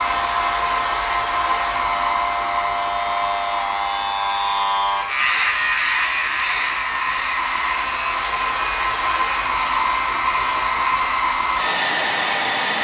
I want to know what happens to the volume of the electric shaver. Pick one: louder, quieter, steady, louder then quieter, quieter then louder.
louder then quieter.